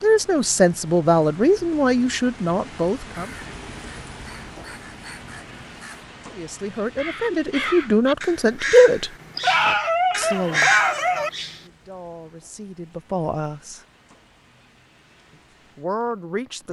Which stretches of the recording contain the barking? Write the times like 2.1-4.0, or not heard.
9.3-11.3.